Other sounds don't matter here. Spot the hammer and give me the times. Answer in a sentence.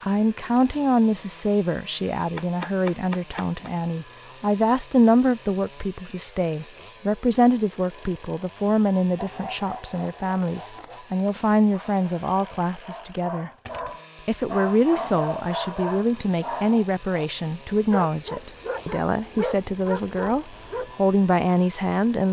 The hammer can be heard from 2.4 to 3.8 s.